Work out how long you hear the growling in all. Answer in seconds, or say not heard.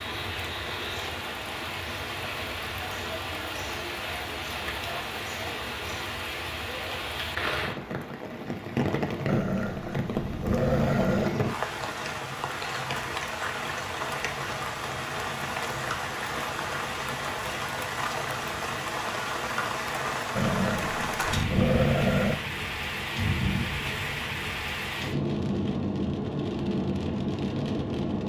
4 s.